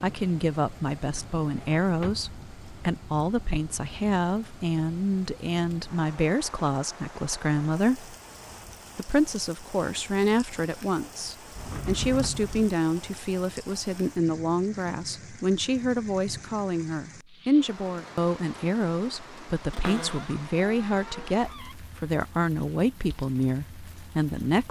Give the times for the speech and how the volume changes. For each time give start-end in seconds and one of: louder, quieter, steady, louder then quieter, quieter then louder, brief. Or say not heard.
0.0-8.2 steady
8.9-24.6 steady.